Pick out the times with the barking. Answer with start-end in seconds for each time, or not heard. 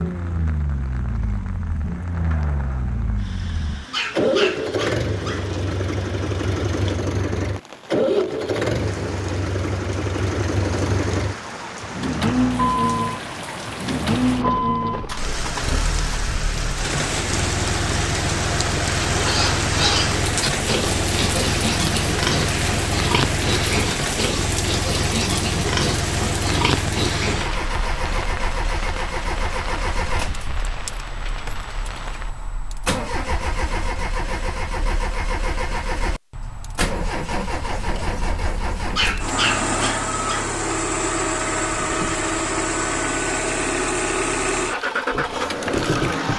3.9-5.5, 38.9-40.5.